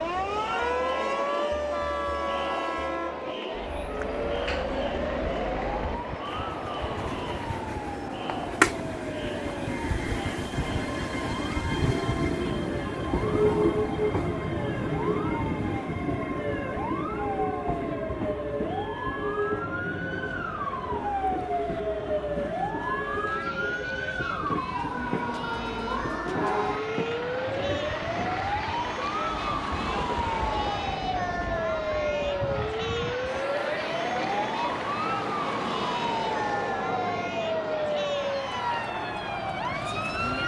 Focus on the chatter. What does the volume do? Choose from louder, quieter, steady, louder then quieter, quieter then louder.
quieter then louder.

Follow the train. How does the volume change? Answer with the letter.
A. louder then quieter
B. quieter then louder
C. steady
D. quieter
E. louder
A.